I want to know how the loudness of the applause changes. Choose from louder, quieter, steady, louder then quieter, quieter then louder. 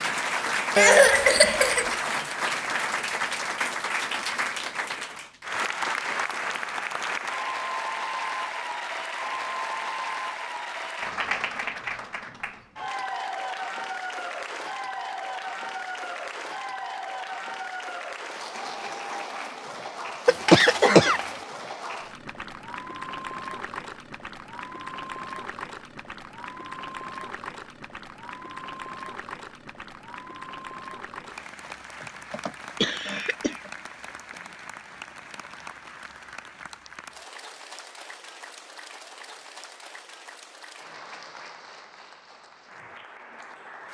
quieter.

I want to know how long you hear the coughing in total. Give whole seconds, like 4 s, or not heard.
4 s.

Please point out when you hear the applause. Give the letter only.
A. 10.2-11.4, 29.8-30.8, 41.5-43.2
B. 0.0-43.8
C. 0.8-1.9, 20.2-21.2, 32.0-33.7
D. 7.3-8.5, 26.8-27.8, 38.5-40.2
B.